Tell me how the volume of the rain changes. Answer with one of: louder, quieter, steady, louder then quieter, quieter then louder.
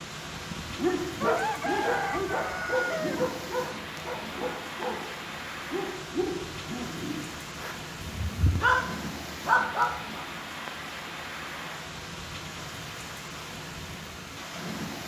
steady.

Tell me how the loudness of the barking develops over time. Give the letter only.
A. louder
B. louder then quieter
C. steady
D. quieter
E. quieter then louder
E.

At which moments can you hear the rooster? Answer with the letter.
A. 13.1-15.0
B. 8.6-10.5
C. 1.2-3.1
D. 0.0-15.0
C.